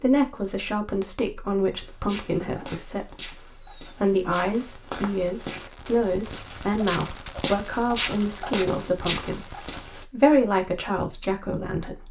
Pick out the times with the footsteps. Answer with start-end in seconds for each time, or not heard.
1.8-10.1.